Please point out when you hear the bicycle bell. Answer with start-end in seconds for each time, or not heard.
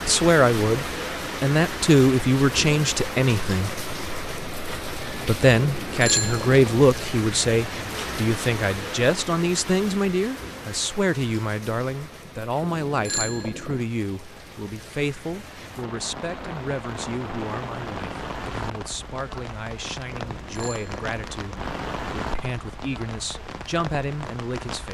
5.5-6.7, 12.6-13.8, 20.1-21.2.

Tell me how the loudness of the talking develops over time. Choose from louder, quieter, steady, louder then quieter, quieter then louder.
quieter.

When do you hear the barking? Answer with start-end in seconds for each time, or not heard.
not heard.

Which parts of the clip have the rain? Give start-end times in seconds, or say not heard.
0.0-24.8.